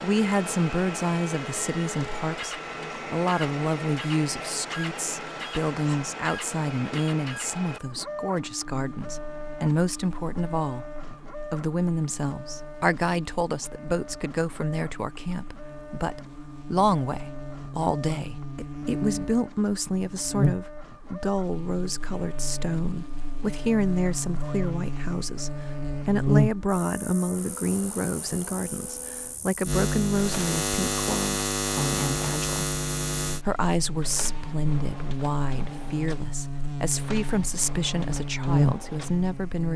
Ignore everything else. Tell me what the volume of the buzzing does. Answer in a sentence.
The volume of the buzzing goes up.